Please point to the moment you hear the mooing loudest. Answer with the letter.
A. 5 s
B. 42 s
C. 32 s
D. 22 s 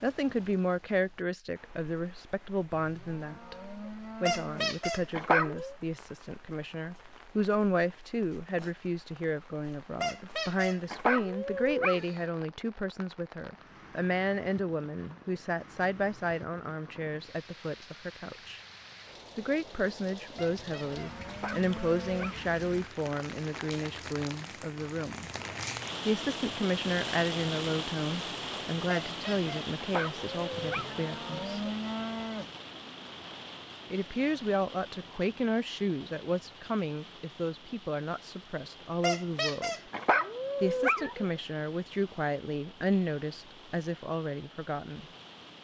C.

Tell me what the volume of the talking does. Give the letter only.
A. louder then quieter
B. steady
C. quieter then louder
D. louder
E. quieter
B.